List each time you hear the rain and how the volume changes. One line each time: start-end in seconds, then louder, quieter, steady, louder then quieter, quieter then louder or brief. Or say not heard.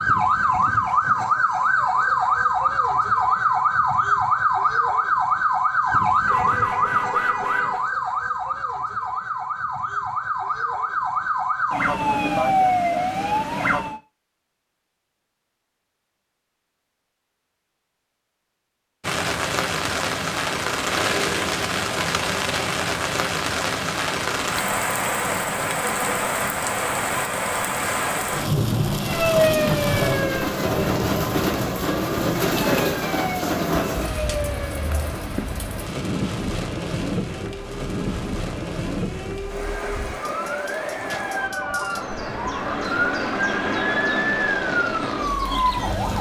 19.0-46.1 quieter.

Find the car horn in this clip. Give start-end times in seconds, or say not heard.
6.2-7.8.